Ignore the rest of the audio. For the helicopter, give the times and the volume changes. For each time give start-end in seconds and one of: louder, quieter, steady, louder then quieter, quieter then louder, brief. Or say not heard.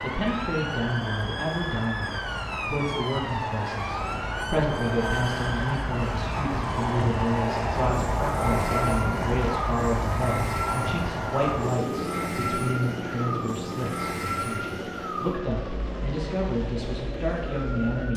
0.0-18.1 louder then quieter.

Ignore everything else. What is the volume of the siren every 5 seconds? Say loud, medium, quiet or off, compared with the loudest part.
loud, loud, loud, medium.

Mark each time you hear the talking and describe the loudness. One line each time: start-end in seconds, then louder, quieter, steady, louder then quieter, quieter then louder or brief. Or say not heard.
0.0-18.1 steady.